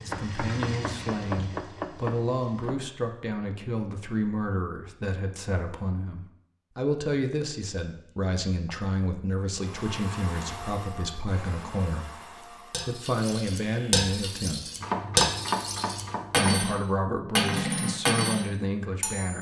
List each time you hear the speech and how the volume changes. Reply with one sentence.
The speech can be heard from 0.0 to 14.7 s, at a steady volume; and briefly from 16.4 to 19.3 s.